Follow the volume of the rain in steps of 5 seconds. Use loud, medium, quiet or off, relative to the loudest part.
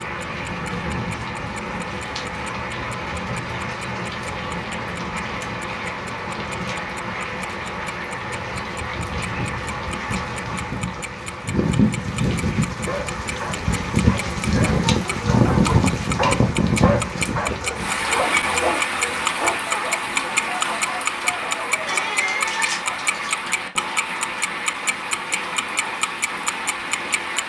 medium, medium, loud, loud, medium, medium.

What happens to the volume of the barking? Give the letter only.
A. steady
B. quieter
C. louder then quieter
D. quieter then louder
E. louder
C.